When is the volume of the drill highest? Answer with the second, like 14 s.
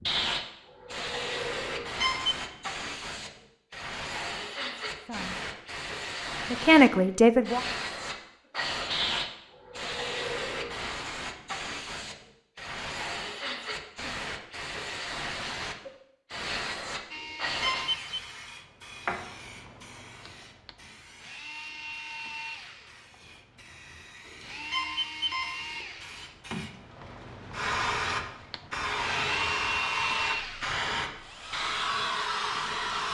30 s.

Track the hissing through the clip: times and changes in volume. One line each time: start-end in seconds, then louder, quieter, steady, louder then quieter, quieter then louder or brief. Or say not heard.
0.0-33.0 quieter then louder.